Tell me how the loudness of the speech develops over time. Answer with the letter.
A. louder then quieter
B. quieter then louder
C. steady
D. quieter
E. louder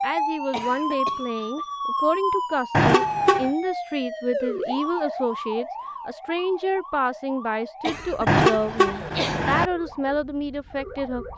C.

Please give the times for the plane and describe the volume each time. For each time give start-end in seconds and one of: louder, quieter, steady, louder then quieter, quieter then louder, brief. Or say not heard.
not heard.